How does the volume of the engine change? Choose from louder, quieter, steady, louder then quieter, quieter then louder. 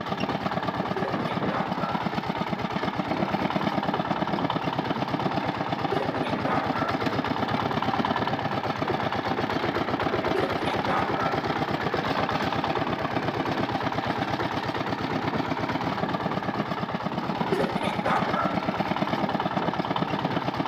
steady.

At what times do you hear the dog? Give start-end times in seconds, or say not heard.
0.9-2.0, 5.9-7.0, 10.3-11.3, 17.5-18.6.